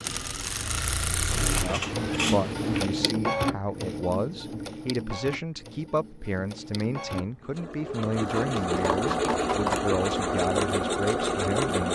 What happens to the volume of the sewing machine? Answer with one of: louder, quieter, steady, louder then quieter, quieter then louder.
quieter then louder.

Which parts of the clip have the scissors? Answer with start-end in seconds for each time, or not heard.
1.2-2.9, 7.8-9.8.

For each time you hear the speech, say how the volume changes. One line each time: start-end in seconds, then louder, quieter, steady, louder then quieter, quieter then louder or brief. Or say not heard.
1.5-11.9 steady.